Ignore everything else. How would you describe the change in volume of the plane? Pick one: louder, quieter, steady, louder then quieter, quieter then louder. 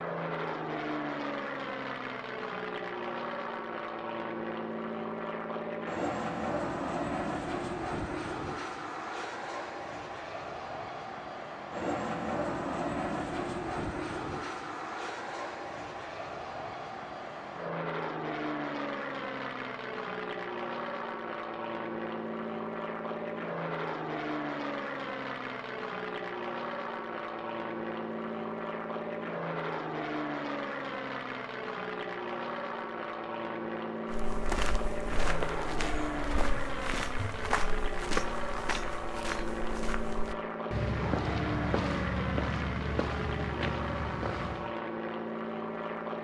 steady.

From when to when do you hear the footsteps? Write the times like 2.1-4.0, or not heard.
34.1-44.8.